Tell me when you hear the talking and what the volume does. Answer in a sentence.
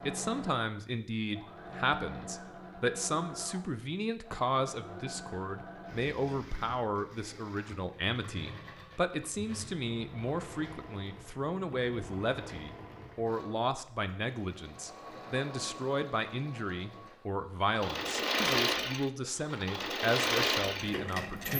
You can hear the talking from 0.1 to 21.5 s, at a steady volume.